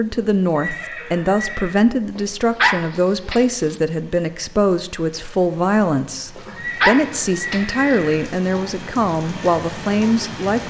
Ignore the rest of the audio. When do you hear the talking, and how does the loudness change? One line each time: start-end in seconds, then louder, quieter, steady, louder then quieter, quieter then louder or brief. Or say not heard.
0.0-10.6 steady.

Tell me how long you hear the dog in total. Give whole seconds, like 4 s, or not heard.
3 s.